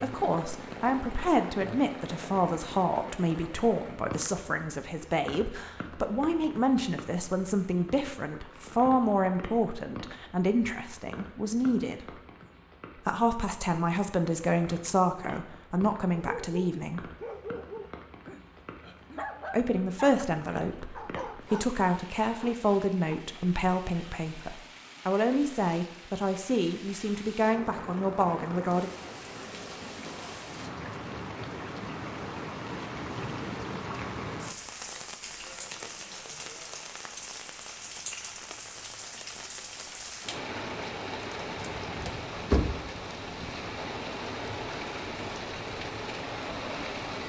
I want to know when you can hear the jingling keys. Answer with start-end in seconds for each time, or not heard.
41.5-42.8.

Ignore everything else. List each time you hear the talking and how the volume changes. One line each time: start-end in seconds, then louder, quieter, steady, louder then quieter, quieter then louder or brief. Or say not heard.
0.0-12.2 steady
12.9-17.1 steady
19.5-28.9 steady.